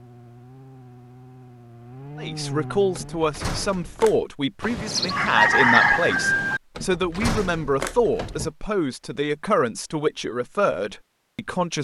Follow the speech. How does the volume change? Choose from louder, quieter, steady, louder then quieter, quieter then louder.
steady.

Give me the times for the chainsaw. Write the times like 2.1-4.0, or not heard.
0.0-3.3.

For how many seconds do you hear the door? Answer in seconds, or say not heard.
3 s.